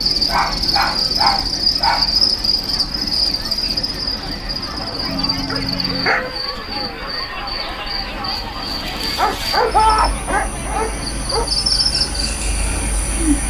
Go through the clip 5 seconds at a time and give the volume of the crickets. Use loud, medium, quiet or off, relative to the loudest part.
loud, medium, loud.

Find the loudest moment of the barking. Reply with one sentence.
The volume of the barking peaks at 10 seconds.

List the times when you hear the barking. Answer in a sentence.
The barking can be heard from 0.2 to 2.1 s, from 5.0 to 6.3 s and from 9.2 to 11.5 s.